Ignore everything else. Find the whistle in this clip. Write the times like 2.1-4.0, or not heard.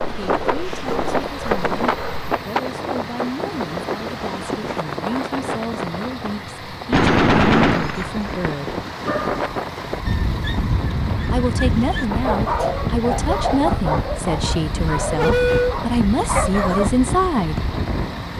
not heard.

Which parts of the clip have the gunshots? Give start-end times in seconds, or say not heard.
6.9-8.6.